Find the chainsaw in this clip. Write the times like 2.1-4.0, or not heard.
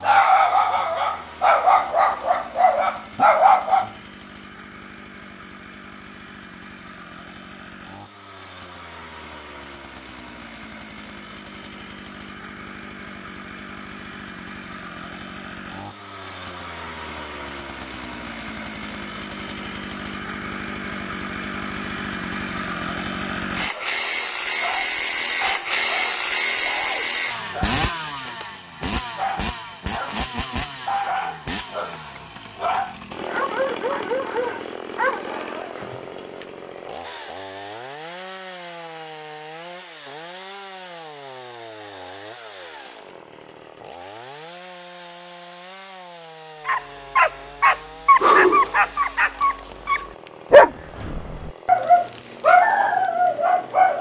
0.0-53.9.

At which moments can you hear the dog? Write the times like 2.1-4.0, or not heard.
0.0-3.9, 23.7-30.2, 30.9-35.9, 46.6-53.9.